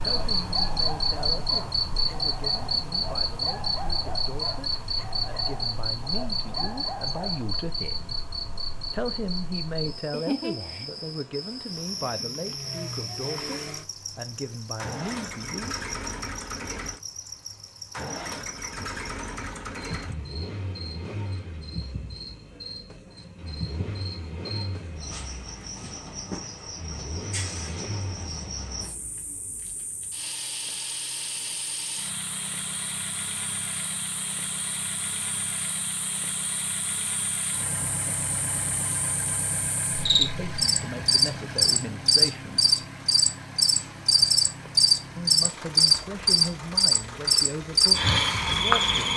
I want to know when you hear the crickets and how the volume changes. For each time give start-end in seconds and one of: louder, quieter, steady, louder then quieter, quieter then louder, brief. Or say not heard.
0.0-49.1 quieter then louder.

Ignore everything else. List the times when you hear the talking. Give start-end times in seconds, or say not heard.
0.0-8.2, 8.9-15.8, 40.0-42.6, 45.1-49.1.